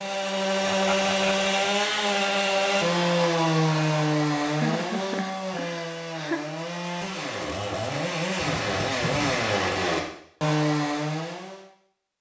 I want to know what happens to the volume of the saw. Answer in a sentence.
The loudness of the saw goes down, then up.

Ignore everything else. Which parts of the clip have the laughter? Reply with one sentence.
You can hear the laughter from 0.7 to 1.5 s, from 4.5 to 6.4 s and from 8.2 to 9.6 s.